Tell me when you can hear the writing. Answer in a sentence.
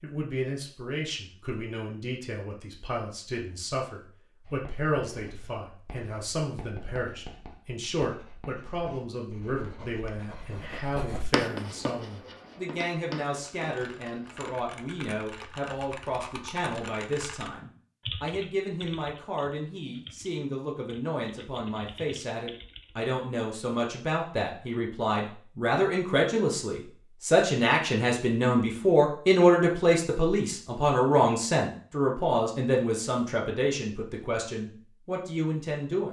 The writing can be heard from 4.5 to 14.6 s.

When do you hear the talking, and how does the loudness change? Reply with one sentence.
The talking can be heard from 0.0 to 36.0 s, getting louder.